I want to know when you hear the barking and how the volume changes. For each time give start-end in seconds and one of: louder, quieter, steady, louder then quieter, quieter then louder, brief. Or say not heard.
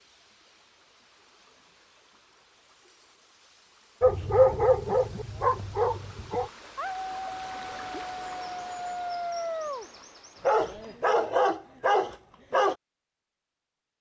4.0-12.8 quieter then louder.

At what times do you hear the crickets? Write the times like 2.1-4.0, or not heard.
not heard.